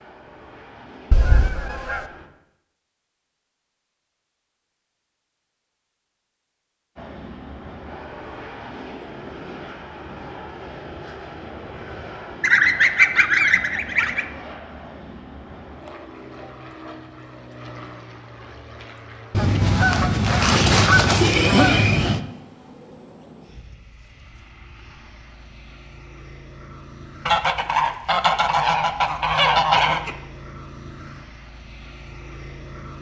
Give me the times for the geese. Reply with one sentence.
The geese can be heard from 1.1 to 2.0 s, from 12.4 to 14.2 s, from 19.3 to 22.2 s and from 27.2 to 30.1 s.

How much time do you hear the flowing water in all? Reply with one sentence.
You can't hear the flowing water here.